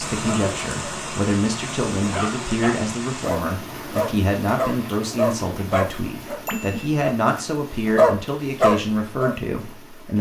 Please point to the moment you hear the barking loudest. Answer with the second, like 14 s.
8 s.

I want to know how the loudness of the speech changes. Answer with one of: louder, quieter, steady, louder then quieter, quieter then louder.
steady.